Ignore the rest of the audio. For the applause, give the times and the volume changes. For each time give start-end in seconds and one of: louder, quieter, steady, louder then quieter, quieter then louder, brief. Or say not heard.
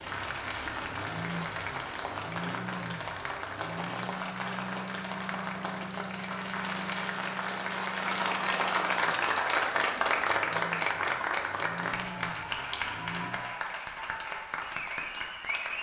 0.0-15.7 louder then quieter.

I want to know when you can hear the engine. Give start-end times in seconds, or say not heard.
0.0-13.4.